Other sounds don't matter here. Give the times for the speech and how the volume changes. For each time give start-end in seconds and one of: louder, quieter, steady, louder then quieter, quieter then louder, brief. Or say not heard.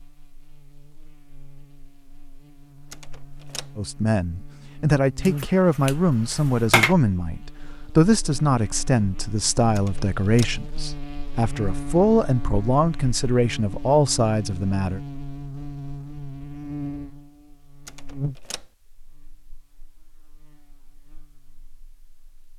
3.8-15.0 steady.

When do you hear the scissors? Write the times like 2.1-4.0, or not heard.
5.2-7.0.